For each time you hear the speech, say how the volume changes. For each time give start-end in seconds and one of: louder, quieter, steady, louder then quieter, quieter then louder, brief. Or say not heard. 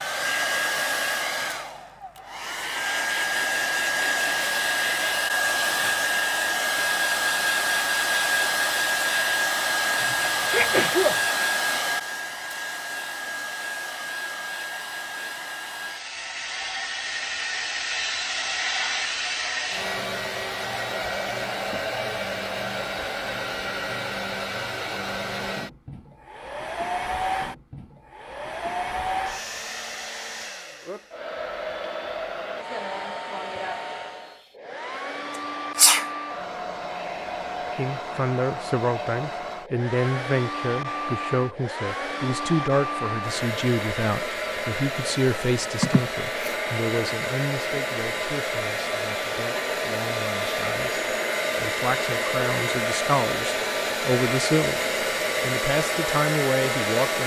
37.8-57.2 quieter then louder.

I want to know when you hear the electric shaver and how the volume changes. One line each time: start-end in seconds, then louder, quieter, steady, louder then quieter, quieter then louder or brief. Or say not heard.
not heard.